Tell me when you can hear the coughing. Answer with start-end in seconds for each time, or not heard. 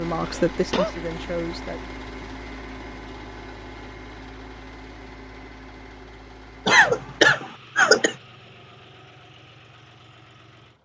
0.2-0.9, 6.7-8.2.